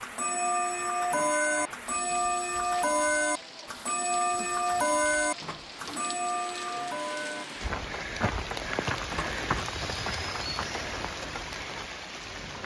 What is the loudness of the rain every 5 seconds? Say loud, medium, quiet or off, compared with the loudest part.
medium, loud, loud.